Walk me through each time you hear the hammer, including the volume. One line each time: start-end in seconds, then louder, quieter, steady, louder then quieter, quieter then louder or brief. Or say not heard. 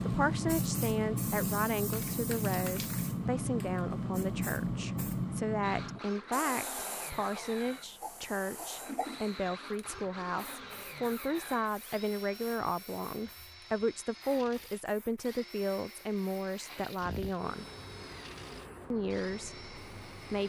not heard.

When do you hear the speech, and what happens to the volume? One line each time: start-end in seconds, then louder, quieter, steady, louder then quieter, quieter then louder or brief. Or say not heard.
0.1-17.6 steady
18.9-20.4 brief.